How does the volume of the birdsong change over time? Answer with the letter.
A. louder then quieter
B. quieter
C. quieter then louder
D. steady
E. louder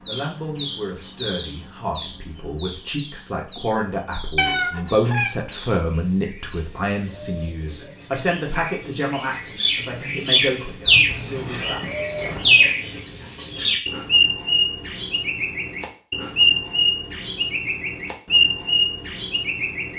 C.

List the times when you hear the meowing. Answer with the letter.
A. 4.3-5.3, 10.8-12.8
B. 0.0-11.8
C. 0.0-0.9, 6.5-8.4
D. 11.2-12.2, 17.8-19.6
A.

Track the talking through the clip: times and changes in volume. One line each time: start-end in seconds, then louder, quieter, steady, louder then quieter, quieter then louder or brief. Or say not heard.
0.0-11.8 louder then quieter.